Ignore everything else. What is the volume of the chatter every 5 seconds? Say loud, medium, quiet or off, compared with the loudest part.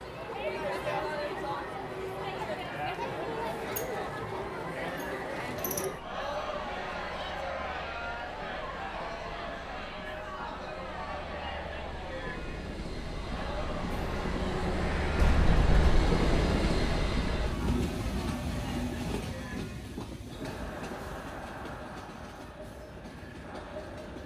loud, loud, medium, medium, medium.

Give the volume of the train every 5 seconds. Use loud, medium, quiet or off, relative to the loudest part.
quiet, quiet, medium, loud, quiet.